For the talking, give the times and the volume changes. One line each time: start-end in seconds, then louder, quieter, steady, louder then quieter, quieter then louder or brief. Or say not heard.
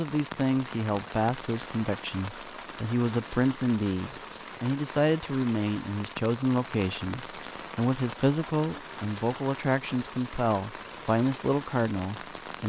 0.0-12.6 steady.